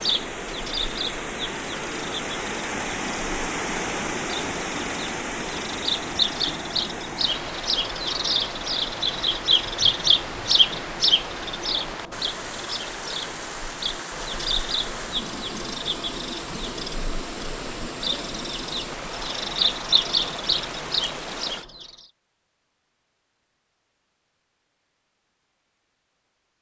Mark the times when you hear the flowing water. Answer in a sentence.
The flowing water can be heard from 0.0 to 21.6 s.